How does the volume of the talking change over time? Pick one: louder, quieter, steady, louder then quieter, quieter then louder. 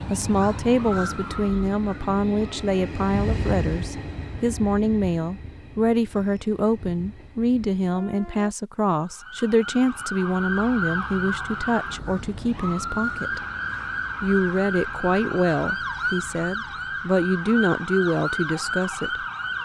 steady.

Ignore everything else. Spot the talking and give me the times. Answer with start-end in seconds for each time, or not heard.
0.1-13.4, 14.2-19.2.